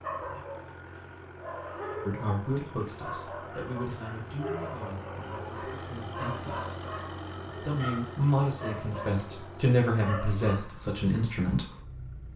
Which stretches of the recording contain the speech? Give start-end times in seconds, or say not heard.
2.0-6.6, 7.5-11.7.